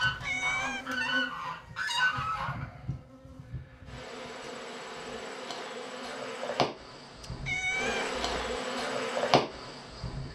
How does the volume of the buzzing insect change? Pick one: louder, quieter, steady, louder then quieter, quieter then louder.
louder.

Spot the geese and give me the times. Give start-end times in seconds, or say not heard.
0.0-2.6.